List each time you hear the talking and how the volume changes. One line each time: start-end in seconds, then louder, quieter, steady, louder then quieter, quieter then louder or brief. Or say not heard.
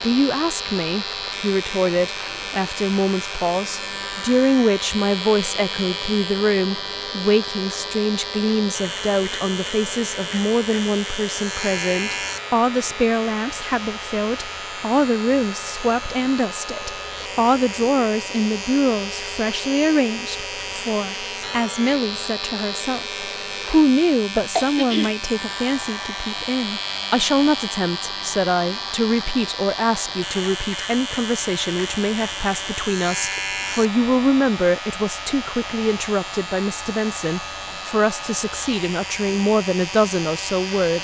0.0-40.9 steady.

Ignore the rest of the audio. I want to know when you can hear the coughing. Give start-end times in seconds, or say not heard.
24.4-25.1.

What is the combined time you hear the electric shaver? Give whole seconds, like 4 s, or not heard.
41 s.